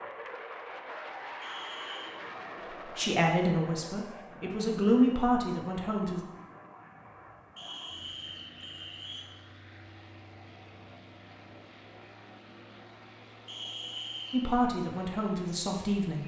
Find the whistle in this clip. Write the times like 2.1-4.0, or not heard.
1.4-2.1, 7.5-9.2, 13.4-14.6.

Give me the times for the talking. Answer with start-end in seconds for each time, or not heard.
2.9-6.2, 14.3-16.2.